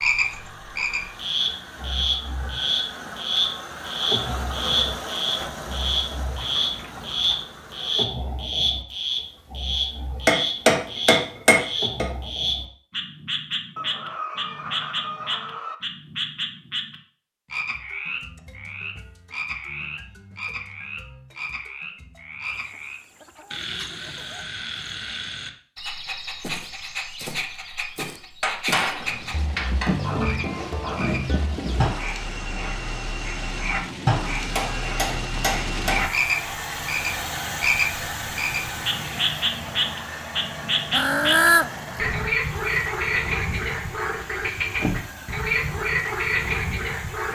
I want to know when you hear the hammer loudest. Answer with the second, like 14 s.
11 s.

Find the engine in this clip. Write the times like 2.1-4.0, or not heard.
0.0-8.1, 28.9-47.3.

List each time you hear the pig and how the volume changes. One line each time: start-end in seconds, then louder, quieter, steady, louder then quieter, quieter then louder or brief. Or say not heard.
not heard.